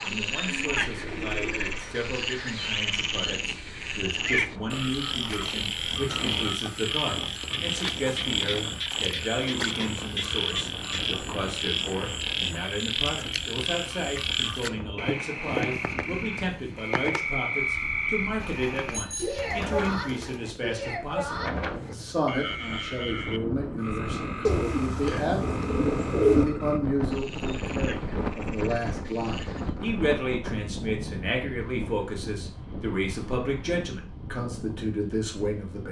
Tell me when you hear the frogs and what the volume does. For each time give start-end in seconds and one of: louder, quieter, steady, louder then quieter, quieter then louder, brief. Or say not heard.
0.0-29.8 quieter.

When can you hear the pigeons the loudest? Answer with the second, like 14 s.
26 s.